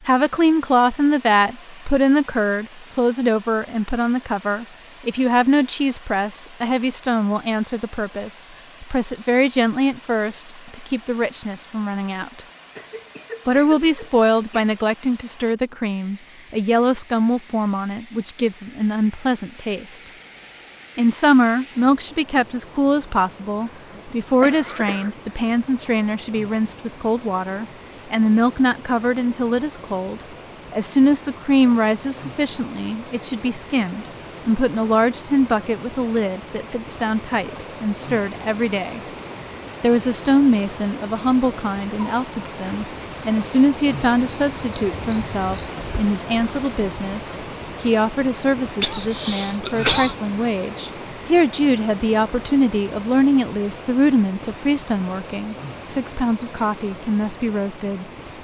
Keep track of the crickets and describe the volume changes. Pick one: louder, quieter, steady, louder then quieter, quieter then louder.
steady.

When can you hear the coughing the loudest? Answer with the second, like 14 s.
50 s.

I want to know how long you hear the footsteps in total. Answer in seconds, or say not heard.
not heard.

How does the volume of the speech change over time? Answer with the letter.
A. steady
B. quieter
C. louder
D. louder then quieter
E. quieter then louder
A.